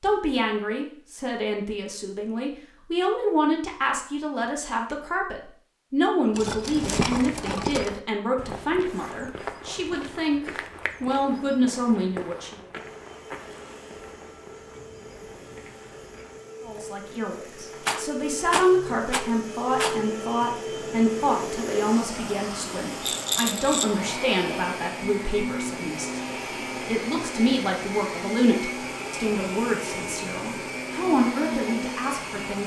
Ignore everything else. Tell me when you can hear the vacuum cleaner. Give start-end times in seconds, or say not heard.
12.7-32.6.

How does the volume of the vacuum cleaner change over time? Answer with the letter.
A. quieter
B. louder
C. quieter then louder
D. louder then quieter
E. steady
B.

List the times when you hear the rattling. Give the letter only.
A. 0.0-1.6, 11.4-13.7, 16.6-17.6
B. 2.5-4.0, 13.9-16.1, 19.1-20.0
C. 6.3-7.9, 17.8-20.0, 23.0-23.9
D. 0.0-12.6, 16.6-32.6
C.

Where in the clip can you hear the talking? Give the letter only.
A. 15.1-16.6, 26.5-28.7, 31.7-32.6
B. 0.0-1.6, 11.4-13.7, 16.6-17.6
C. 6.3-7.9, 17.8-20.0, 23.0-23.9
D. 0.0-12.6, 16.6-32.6
D.